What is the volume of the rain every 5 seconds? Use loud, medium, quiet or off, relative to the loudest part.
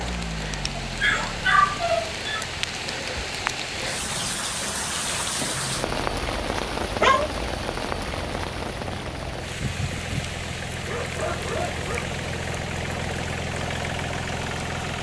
loud, loud, medium.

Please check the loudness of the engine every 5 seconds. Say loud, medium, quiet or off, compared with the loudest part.
medium, medium, loud.